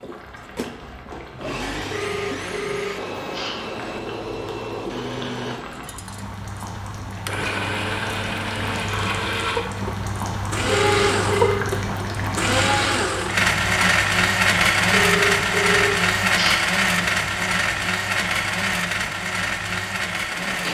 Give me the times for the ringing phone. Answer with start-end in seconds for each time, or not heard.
1.9-3.5, 10.7-11.7, 14.9-16.6.